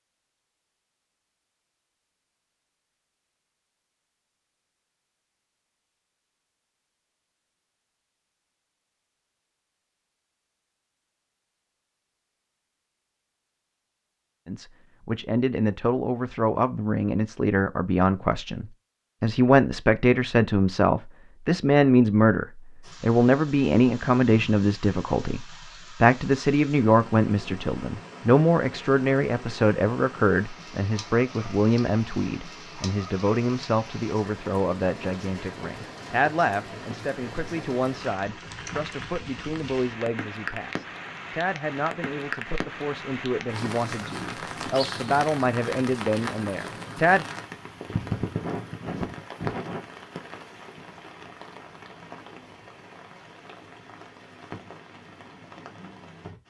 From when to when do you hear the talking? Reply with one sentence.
The talking can be heard from 14.4 to 47.2 s.